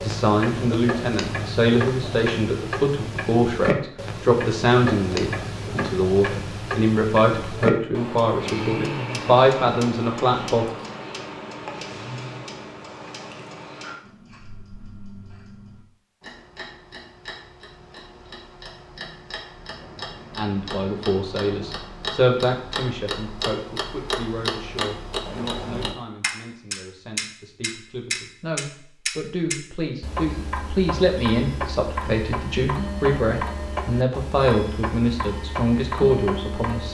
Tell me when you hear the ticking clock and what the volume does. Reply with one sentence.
The ticking clock can be heard from 0.0 to 36.8 s, getting quieter then louder.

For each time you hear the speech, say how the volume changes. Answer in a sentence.
You can hear the speech from 0.0 to 10.7 s, at a steady volume; and from 20.4 to 36.8 s, getting quieter then louder.